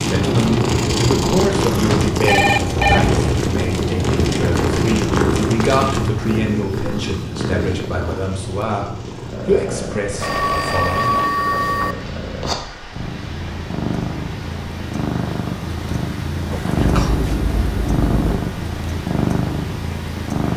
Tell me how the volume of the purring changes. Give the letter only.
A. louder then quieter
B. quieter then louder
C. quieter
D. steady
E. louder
B.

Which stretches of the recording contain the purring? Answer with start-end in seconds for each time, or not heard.
0.0-20.5.